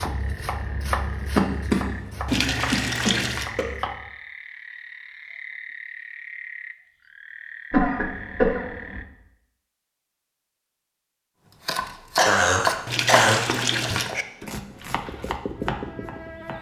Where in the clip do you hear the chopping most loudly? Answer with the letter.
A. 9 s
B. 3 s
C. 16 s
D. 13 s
D.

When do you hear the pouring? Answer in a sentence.
The pouring can be heard from 2.2 to 3.5 s and from 12.8 to 14.1 s.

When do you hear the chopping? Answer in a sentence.
You can hear the chopping from 0.0 to 4.1 s and from 11.7 to 16.5 s.